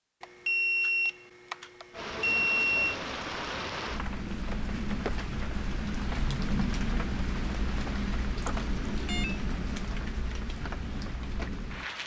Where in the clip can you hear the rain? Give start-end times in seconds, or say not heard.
1.9-12.0.